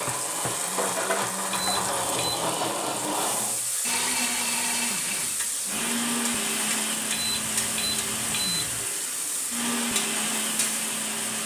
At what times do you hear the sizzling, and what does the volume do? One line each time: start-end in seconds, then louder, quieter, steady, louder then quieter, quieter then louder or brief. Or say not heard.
0.0-11.4 steady.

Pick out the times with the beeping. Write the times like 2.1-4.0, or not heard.
1.5-2.3, 7.1-8.8.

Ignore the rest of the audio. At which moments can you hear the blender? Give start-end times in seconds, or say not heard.
0.0-11.4.